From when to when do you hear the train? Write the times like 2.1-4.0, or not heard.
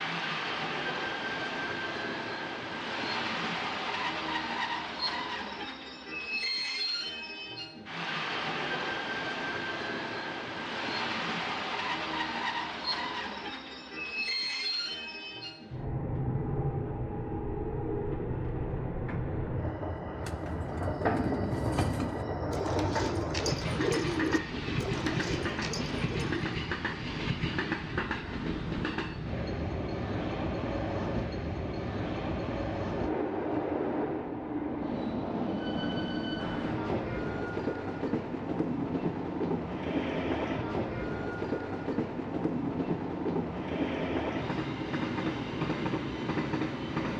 0.0-47.1.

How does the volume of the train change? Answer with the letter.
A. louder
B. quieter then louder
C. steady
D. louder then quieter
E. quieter
C.